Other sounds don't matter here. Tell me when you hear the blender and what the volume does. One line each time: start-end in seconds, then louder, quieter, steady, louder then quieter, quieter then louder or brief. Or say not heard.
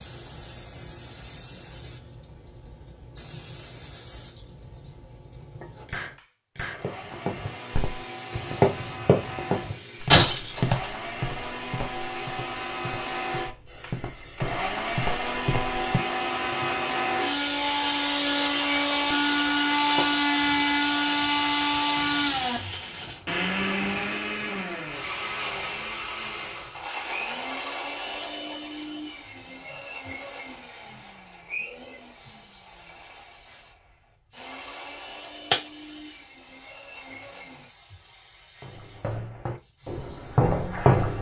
5.8-37.8 louder then quieter.